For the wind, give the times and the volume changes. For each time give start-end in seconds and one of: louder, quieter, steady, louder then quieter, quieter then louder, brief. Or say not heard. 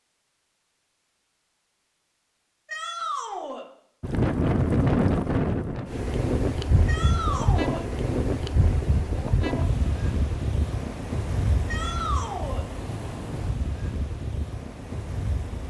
4.0-15.6 quieter.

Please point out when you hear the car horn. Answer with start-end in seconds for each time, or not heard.
not heard.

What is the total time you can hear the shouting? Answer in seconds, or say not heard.
3 s.